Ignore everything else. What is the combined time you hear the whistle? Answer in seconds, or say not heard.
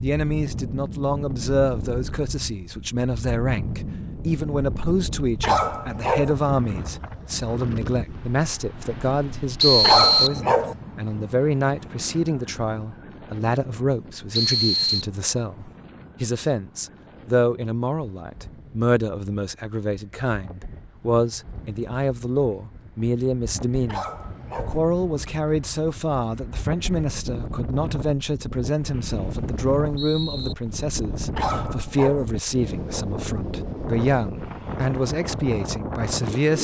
3 s.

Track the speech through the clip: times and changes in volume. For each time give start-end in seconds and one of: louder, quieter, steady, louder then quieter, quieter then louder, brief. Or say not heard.
0.0-36.5 steady.